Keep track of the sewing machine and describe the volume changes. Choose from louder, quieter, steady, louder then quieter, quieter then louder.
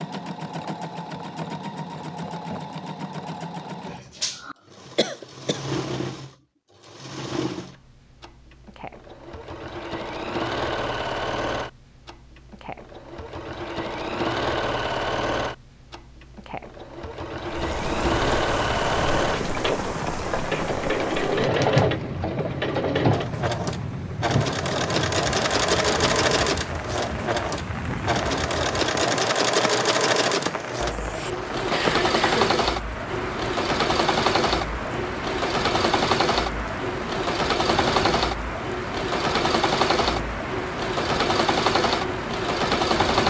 louder.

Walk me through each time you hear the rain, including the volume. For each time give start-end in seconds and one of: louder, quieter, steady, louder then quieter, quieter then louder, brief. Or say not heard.
17.4-43.2 steady.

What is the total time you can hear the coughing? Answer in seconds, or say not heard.
2 s.